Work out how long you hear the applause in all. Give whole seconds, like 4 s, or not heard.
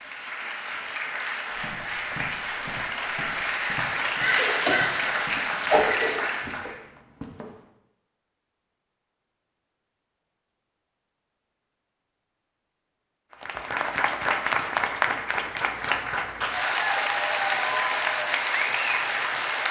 13 s.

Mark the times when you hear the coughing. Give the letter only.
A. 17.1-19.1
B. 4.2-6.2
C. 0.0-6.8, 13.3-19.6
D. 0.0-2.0
B.